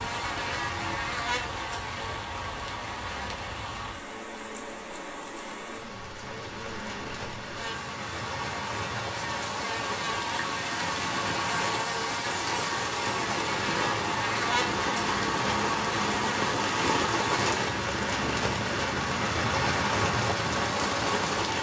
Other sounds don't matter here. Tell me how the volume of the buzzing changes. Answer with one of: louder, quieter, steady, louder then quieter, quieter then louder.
quieter then louder.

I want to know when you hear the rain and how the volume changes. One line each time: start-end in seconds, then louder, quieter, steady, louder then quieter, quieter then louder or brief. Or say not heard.
0.0-21.5 louder.